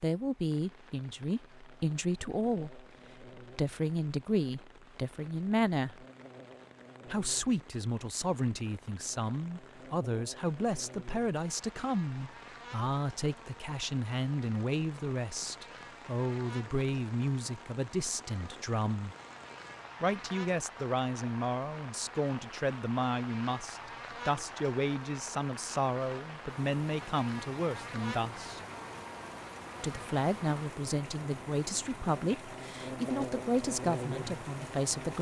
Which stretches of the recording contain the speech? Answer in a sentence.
You can hear the speech from 0.0 to 6.0 s, from 7.0 to 19.1 s, from 20.0 to 28.6 s and from 29.8 to 35.1 s.